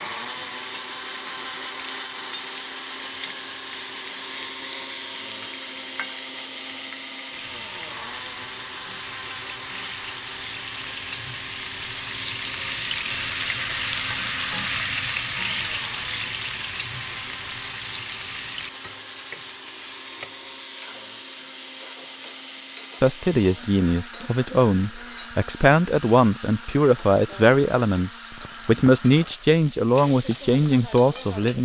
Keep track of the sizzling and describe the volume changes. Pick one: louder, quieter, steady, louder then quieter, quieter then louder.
louder then quieter.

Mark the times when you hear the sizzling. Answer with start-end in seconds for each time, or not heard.
0.0-31.6.